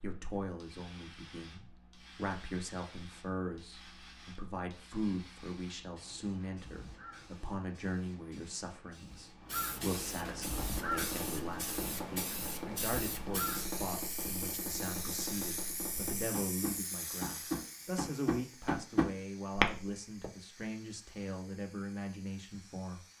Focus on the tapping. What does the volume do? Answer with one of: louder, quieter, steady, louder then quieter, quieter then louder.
louder.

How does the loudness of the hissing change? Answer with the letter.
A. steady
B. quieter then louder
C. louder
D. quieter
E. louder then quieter
E.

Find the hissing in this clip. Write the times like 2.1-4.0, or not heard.
0.0-23.1.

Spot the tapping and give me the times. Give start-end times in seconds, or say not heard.
10.4-20.3.